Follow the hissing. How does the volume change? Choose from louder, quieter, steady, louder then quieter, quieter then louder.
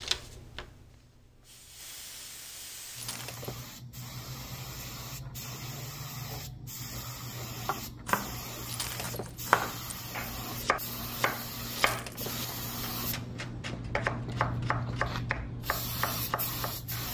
louder.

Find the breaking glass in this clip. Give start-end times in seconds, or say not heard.
3.0-3.7, 8.7-9.4, 11.7-12.3.